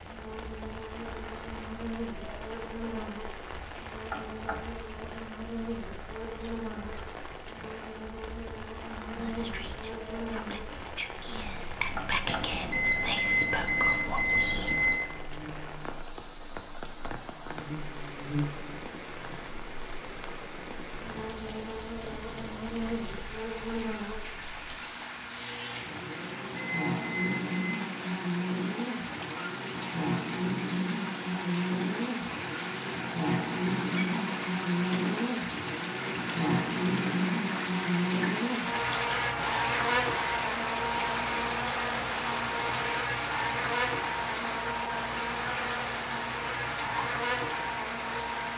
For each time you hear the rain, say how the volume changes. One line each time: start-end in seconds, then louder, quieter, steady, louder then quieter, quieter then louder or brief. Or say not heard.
0.0-48.5 louder.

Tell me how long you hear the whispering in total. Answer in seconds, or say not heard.
6 s.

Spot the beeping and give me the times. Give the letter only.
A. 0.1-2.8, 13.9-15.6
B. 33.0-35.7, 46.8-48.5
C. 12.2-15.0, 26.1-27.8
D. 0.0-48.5
C.